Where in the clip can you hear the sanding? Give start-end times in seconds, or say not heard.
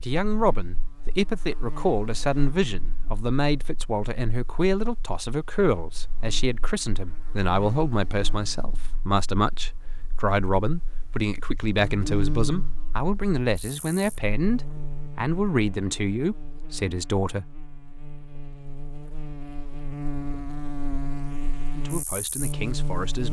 not heard.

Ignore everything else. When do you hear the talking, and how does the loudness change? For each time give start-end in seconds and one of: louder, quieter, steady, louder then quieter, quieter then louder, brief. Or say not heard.
0.0-17.5 steady
21.7-23.2 brief.